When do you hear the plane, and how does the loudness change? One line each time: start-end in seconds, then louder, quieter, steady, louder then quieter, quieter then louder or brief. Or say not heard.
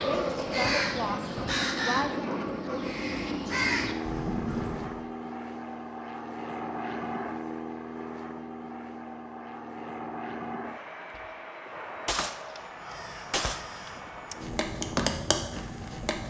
0.0-16.2 quieter.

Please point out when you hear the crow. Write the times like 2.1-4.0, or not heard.
0.0-5.0, 12.7-16.2.